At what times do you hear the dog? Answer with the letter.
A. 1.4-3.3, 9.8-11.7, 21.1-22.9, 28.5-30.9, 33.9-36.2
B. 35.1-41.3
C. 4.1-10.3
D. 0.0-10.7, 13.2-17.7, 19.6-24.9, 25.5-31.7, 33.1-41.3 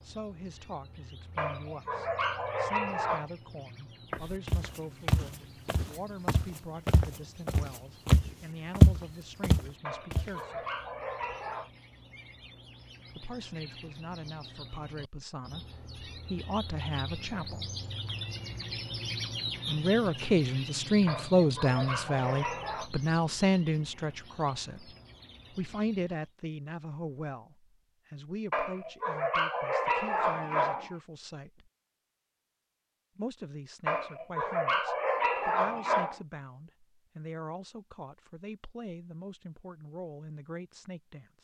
A.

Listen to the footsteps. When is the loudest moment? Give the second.
9 s.